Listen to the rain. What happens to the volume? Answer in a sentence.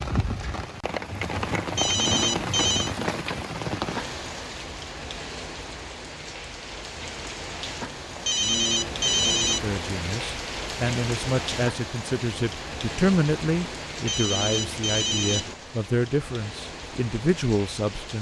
The volume of the rain goes down.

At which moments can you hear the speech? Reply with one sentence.
The speech can be heard from 9.5 to 18.1 s.